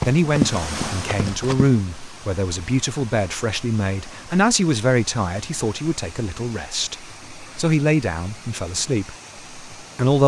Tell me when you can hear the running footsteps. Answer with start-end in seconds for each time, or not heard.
0.0-1.7.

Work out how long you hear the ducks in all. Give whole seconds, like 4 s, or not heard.
not heard.